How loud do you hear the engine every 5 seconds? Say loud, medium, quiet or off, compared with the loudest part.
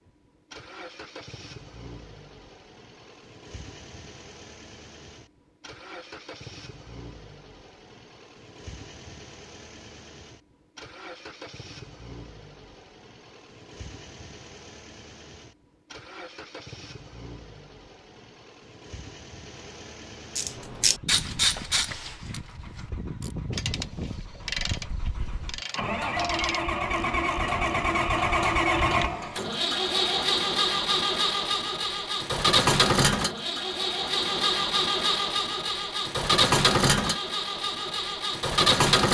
quiet, quiet, quiet, quiet, quiet, loud, loud, loud.